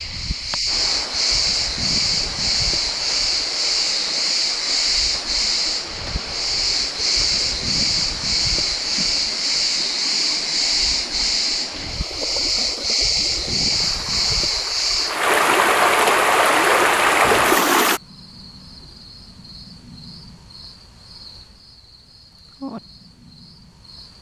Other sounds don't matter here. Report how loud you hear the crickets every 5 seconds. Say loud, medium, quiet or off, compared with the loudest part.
loud, loud, loud, quiet, quiet.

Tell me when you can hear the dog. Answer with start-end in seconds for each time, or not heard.
not heard.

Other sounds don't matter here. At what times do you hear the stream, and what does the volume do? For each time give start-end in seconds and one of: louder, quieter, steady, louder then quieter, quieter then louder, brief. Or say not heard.
0.0-18.0 louder.